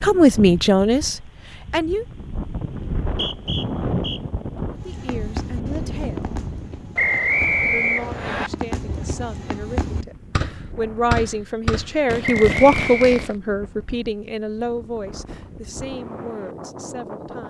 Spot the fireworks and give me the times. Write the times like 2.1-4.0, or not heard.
4.8-13.4.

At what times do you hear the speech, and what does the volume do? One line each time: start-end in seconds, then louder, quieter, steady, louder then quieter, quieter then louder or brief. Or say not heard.
0.0-2.0 brief
4.7-6.5 brief
7.7-17.4 louder then quieter.